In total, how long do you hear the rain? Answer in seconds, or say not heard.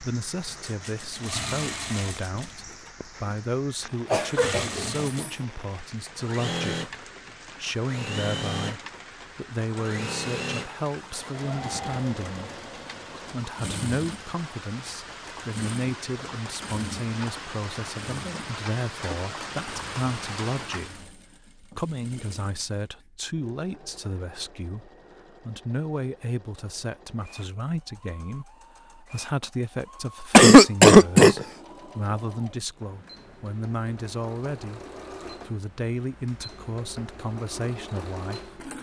21 s.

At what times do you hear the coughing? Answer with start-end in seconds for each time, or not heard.
4.1-5.3, 30.3-31.4.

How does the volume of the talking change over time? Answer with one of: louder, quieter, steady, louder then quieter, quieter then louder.
steady.